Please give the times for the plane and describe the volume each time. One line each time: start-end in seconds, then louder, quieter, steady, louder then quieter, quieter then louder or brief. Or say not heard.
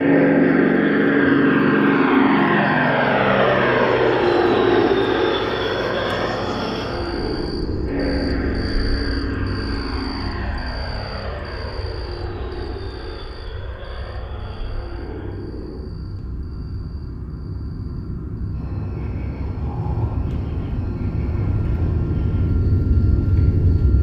0.0-23.9 quieter then louder.